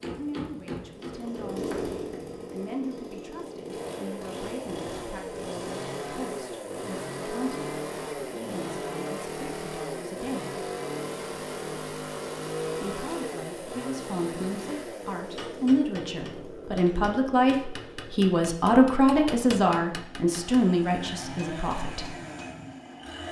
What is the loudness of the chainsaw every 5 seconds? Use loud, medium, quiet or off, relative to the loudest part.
loud, loud, loud, medium, medium.